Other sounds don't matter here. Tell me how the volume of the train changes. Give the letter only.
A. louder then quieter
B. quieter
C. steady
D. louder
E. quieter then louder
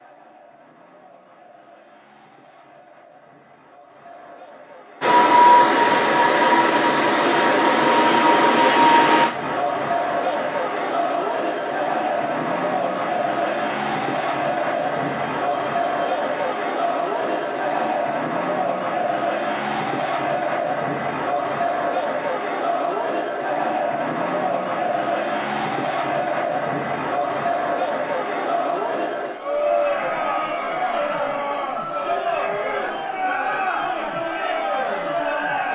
B.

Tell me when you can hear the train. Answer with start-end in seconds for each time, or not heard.
5.0-18.2.